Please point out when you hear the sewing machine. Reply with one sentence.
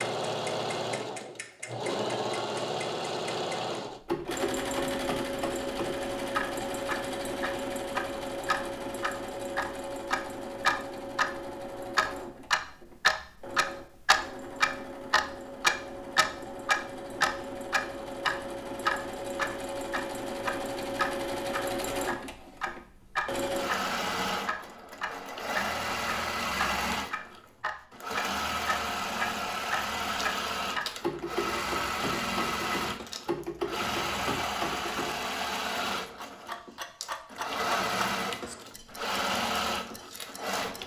The sewing machine can be heard from 0.0 to 40.8 s.